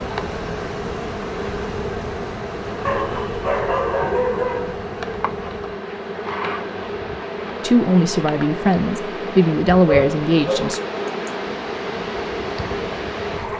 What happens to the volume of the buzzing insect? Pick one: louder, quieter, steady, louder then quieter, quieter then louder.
steady.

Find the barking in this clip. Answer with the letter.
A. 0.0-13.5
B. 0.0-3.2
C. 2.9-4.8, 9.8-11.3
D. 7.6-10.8
C.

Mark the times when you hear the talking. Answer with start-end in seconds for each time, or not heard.
7.6-10.8.